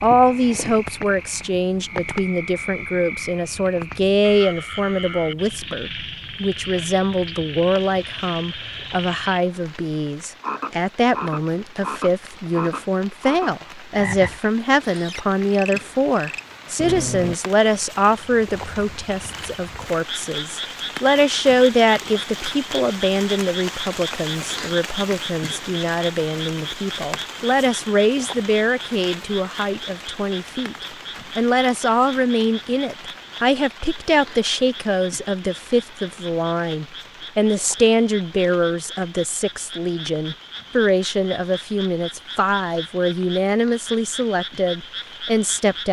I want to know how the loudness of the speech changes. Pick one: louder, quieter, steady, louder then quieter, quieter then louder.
steady.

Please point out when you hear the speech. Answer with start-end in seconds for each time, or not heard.
0.0-30.8, 31.4-45.8.